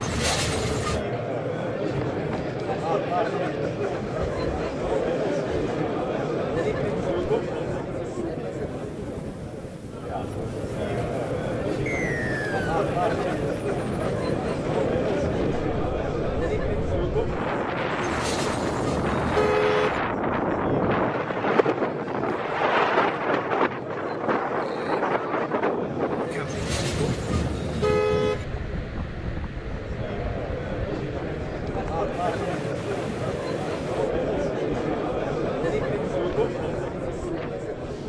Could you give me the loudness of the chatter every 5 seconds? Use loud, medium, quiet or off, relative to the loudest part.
loud, loud, loud, loud, medium, medium, loud, loud.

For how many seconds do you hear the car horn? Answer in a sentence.
The car horn can be heard for 5 seconds in total.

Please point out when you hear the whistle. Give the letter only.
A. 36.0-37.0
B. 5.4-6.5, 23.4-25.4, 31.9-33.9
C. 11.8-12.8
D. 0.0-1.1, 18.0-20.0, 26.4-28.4
C.